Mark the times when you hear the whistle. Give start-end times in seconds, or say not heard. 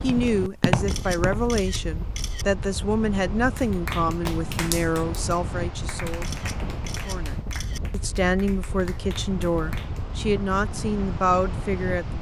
not heard.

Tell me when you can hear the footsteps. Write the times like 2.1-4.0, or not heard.
0.0-1.6.